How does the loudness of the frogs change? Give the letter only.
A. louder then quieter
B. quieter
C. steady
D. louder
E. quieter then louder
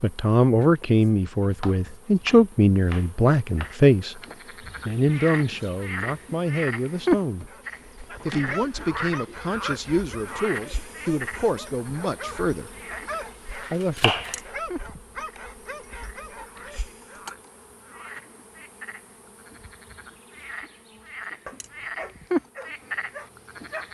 E.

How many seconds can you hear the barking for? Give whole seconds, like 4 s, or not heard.
12 s.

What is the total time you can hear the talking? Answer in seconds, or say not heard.
12 s.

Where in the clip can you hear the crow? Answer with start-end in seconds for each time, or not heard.
not heard.